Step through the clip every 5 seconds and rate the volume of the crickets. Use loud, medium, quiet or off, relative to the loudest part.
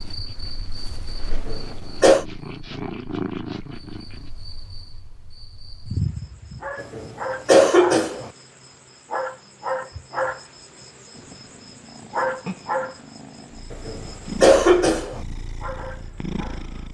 medium, loud, loud, medium.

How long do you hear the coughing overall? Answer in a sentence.
You can hear the coughing for 4 seconds altogether.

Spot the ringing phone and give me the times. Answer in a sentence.
The ringing phone can't be heard in this clip.